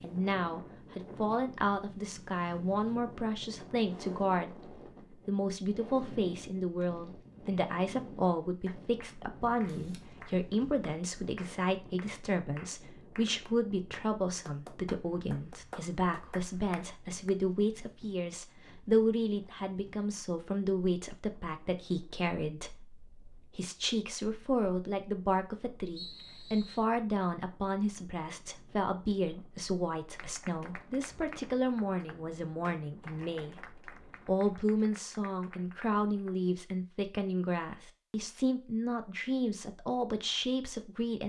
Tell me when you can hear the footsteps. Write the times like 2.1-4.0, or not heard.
not heard.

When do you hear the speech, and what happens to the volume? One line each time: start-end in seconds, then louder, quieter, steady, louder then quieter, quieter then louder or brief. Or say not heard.
0.0-41.2 steady.